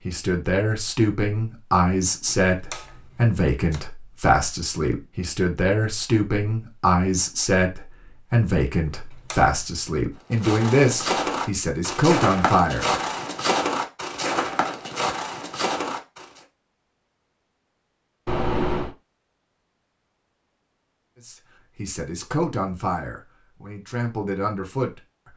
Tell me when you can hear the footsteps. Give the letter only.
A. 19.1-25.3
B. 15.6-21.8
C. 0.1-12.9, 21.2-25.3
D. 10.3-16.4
D.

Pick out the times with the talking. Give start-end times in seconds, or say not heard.
0.1-12.9, 21.2-25.3.